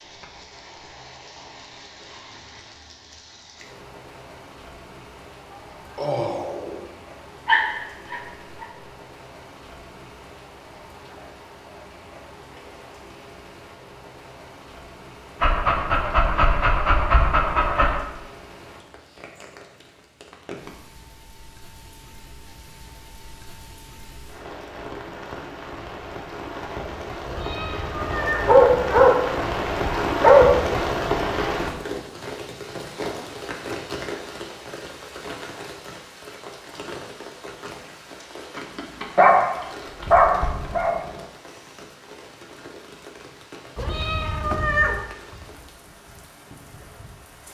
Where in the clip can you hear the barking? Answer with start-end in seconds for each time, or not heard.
7.5-8.7, 15.4-18.0, 28.2-30.5, 38.5-41.0.